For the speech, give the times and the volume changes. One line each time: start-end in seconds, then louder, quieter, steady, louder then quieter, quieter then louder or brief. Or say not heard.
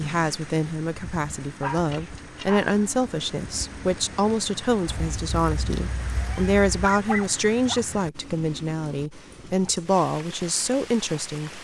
0.0-11.5 steady.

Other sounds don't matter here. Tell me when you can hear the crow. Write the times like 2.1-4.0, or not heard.
not heard.